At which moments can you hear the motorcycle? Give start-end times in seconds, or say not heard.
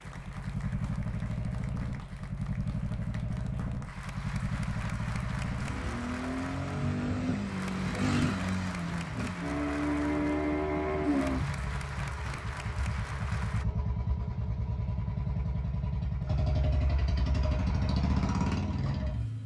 0.0-19.4.